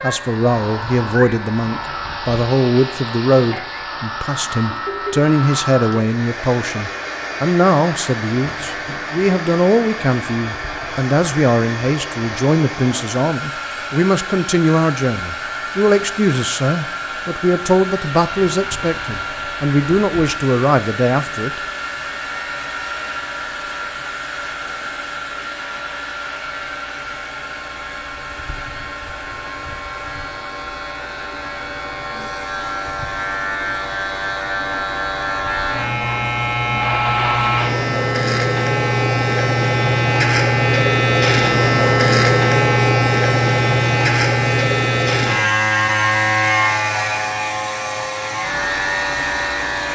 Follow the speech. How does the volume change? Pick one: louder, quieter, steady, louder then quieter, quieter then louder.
steady.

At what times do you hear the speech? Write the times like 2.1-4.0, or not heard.
0.0-21.6.